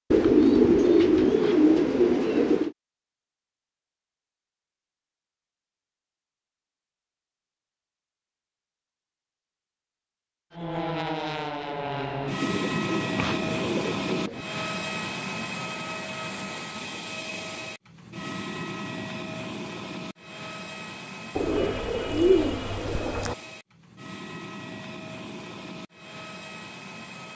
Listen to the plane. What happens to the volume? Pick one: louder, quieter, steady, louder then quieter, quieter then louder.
quieter.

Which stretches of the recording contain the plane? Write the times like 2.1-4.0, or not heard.
10.5-27.3.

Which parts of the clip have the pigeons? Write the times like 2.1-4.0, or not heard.
0.1-2.8, 12.4-14.4, 21.4-23.4.